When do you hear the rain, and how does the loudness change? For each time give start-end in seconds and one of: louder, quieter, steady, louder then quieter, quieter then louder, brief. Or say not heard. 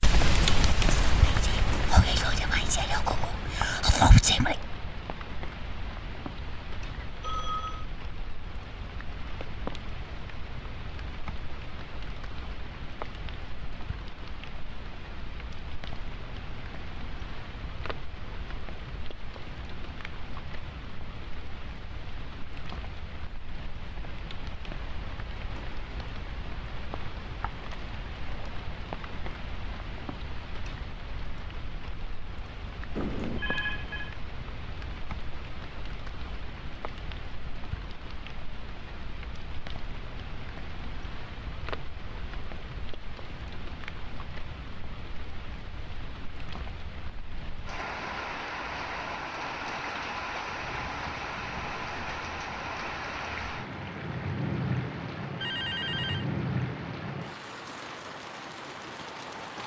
0.0-59.6 quieter then louder.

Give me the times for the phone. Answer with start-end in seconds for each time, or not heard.
7.0-7.8, 33.0-34.1, 55.4-56.2.